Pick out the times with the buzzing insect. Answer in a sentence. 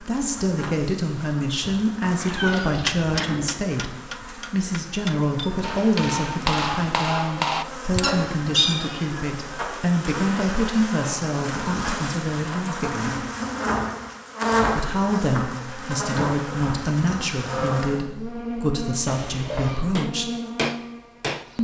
The buzzing insect can be heard from 0.0 to 21.5 s.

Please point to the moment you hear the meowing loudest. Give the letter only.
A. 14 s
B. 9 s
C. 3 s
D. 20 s
B.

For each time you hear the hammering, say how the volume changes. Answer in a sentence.
You can hear the hammering from 2.6 to 8.1 s, getting quieter then louder; and briefly from 19.9 to 21.4 s.